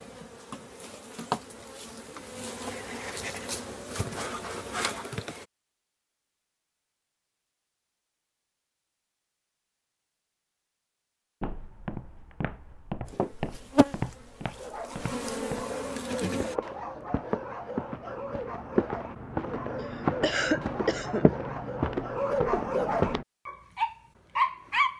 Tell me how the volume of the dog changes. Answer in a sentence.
The volume of the dog goes up.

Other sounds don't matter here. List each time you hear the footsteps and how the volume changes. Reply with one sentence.
The footsteps can be heard from 11.4 to 23.2 s, getting louder.